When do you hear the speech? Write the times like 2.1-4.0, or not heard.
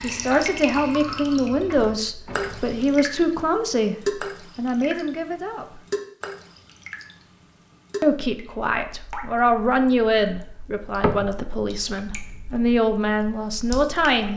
0.0-4.0, 4.5-5.8, 8.0-14.3.